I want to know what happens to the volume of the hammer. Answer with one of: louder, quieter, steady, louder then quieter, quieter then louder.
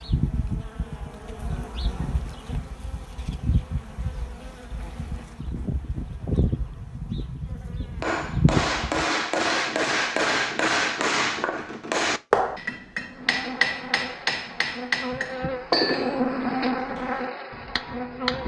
quieter.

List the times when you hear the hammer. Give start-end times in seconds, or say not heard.
8.0-18.4.